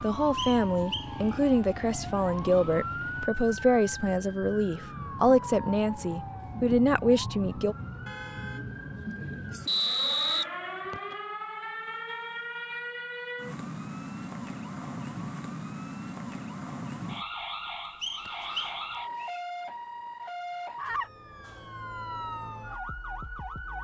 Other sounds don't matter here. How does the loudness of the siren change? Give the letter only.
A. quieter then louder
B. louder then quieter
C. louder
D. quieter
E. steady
E.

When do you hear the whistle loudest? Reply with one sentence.
The loudest moment of the whistle is at 10 seconds.